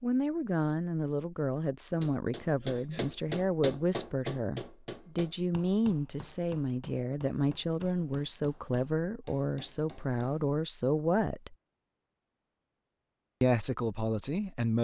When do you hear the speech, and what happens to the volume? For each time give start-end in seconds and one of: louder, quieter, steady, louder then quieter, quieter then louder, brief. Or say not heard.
0.0-11.6 steady
13.4-14.8 brief.